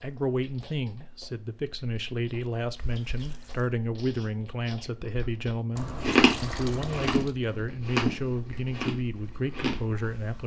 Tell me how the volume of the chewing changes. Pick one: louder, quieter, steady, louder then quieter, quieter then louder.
louder then quieter.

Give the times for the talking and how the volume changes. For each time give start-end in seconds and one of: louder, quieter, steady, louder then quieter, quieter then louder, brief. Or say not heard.
0.0-10.4 steady.